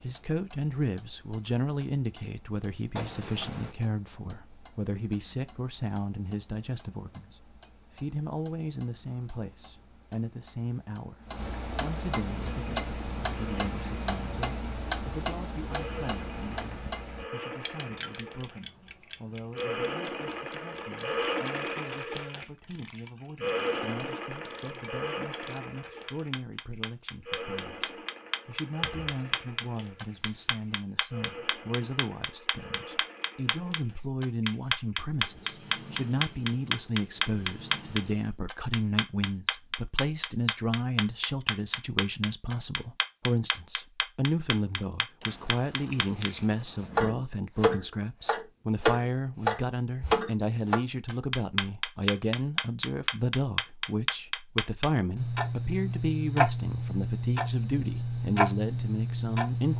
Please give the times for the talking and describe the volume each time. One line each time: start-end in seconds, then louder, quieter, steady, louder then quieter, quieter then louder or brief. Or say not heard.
0.0-59.7 quieter then louder.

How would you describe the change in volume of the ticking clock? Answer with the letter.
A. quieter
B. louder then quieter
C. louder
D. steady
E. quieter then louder
C.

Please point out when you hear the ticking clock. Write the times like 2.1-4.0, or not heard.
0.0-59.7.